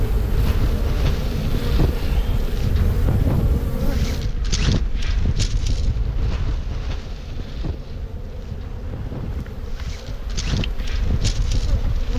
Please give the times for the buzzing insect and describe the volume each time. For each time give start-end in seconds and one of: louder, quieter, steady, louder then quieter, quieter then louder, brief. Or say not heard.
0.0-12.1 quieter.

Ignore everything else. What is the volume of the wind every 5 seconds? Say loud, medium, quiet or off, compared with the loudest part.
loud, medium, loud.